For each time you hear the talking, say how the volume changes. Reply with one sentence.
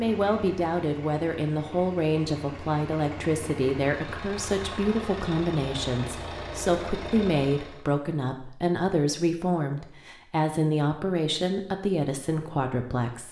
The talking can be heard from 0.0 to 13.2 s, at a steady volume.